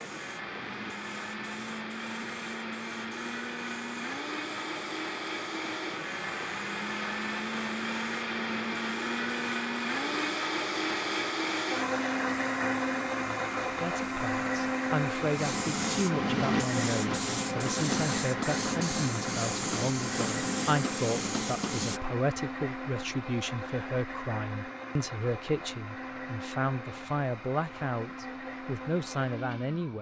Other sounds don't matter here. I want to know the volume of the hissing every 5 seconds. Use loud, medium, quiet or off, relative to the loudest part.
quiet, quiet, quiet, loud, loud, off.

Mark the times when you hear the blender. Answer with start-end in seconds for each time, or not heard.
0.0-29.9.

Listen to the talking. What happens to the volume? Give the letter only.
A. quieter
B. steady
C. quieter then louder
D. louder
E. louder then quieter
B.